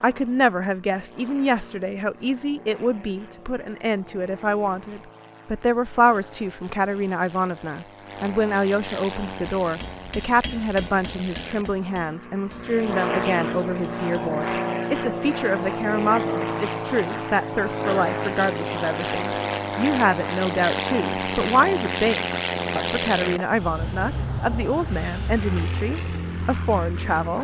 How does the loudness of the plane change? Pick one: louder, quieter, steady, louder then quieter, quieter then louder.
louder.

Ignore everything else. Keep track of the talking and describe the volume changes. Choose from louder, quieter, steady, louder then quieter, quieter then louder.
steady.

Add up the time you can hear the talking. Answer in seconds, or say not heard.
27 s.